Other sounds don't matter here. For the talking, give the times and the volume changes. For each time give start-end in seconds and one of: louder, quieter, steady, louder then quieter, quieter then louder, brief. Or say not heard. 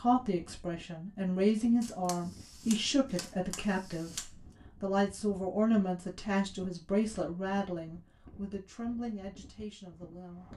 0.0-10.5 quieter.